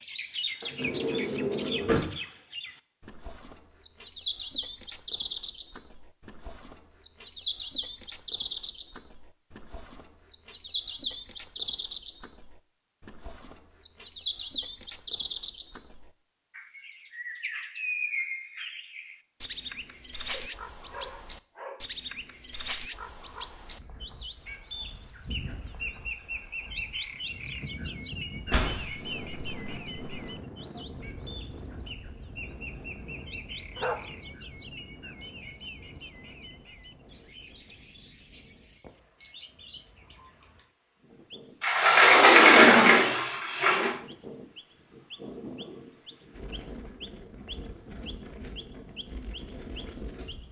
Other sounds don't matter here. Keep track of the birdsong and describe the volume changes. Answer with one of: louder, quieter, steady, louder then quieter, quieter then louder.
quieter.